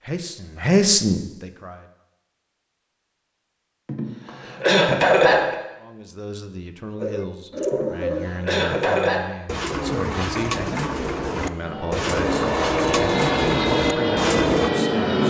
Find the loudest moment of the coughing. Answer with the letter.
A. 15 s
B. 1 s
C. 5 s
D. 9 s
C.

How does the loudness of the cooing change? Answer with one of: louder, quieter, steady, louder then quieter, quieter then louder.
steady.